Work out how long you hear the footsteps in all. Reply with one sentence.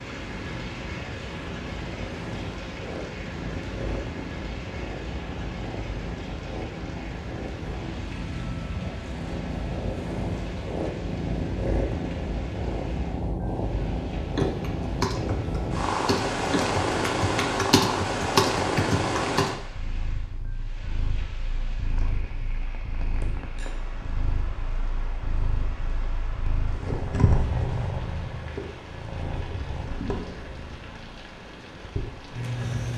The footsteps can't be heard in this clip.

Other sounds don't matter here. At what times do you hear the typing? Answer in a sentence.
The typing can be heard from 14.3 to 19.5 s.